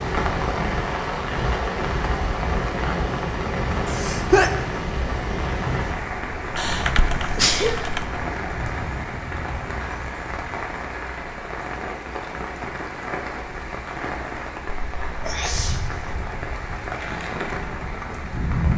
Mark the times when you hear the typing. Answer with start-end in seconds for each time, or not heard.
6.7-8.2.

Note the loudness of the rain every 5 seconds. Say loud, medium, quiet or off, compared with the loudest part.
loud, loud, medium, loud.